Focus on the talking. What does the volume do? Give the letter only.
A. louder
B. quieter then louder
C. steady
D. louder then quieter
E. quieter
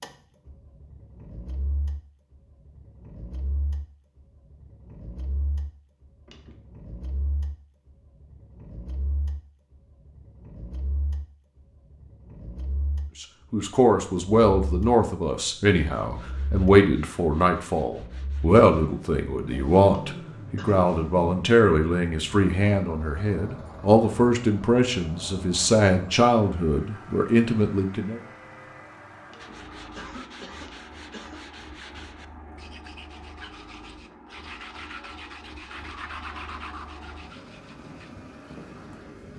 C.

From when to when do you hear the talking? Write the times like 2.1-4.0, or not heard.
13.2-28.2.